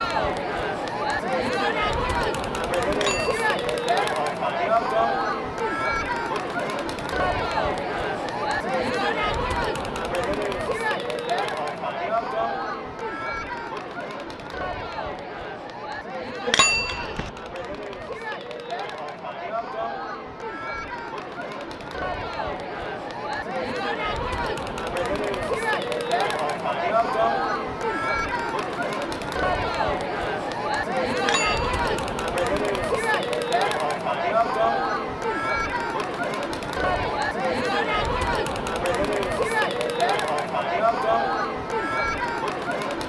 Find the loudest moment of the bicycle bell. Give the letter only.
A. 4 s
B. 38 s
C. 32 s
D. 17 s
D.